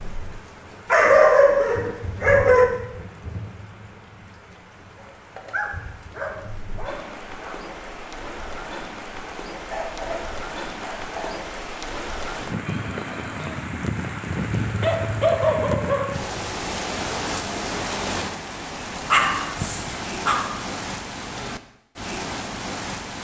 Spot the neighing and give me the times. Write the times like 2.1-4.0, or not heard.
12.6-13.7.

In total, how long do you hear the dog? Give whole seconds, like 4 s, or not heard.
9 s.